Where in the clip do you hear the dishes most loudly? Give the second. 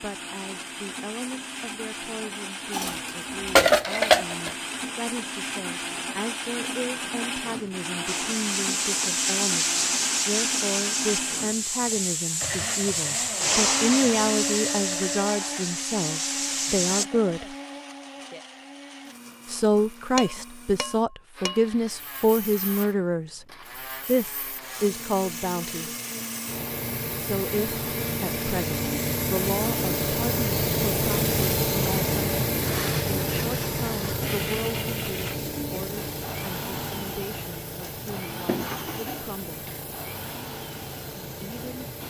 4 s.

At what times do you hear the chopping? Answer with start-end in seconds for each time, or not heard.
not heard.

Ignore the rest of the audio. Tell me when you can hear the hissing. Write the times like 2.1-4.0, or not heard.
8.1-17.1, 21.8-42.0.